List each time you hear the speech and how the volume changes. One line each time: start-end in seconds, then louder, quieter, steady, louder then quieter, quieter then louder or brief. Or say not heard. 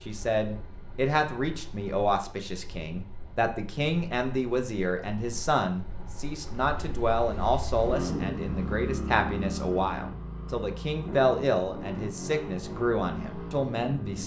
0.1-14.2 steady.